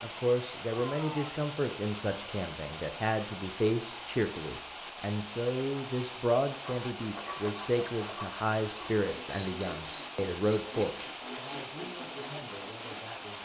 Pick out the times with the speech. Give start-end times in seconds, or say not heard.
0.0-13.3.